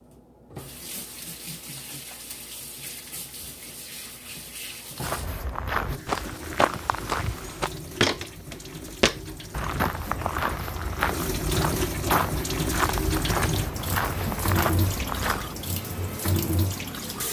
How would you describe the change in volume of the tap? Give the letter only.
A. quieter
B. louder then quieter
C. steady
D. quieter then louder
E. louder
E.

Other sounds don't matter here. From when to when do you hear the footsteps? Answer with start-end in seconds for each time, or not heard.
5.0-15.5.